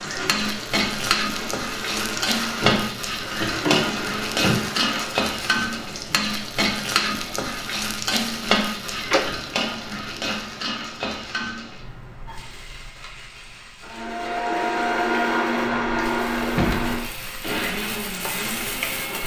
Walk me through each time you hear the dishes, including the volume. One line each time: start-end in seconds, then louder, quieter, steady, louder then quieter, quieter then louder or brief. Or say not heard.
not heard.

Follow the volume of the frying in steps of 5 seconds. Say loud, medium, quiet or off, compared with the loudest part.
loud, loud, medium, medium.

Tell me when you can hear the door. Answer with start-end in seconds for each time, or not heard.
2.6-4.6, 9.0-9.6, 16.6-17.5.